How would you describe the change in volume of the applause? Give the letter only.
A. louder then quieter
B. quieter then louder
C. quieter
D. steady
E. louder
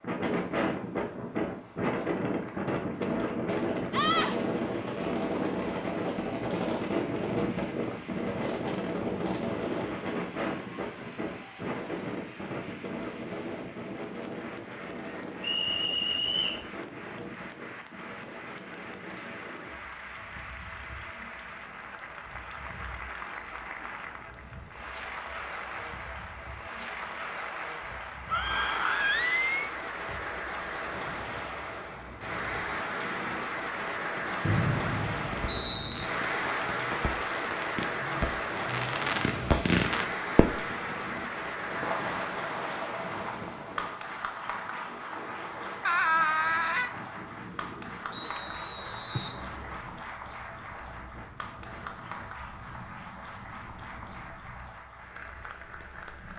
A.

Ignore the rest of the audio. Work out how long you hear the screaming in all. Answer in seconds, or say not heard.
3 s.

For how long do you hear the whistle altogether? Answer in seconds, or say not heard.
4 s.